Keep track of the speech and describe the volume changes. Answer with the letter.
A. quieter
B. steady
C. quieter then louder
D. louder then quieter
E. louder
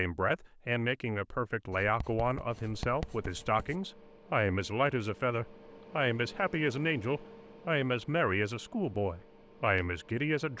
B.